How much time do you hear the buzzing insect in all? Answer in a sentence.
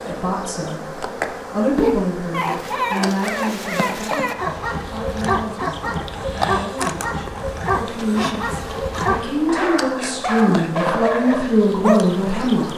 The buzzing insect can be heard for 13 seconds in total.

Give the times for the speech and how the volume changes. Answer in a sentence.
The speech can be heard from 0.0 to 4.3 s, getting louder then quieter; and from 4.9 to 12.7 s, getting louder.